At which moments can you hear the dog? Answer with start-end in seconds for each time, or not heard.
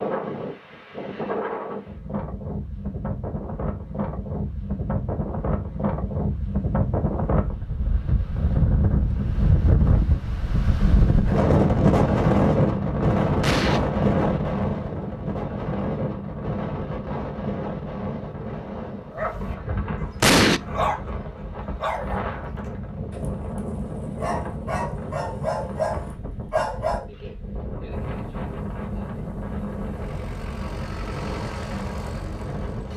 19.1-27.1.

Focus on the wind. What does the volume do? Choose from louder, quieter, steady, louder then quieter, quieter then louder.
louder then quieter.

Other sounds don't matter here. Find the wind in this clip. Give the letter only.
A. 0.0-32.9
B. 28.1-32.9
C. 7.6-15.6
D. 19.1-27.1
A.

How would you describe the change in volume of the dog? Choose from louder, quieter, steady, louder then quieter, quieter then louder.
quieter then louder.